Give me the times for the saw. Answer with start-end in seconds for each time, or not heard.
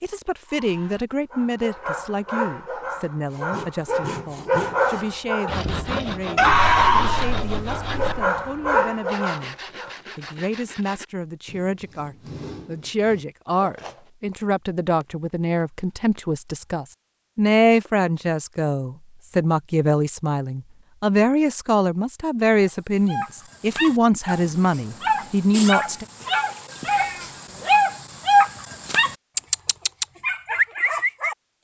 3.3-14.1.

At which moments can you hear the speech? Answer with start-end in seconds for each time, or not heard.
0.0-9.6, 10.2-26.1.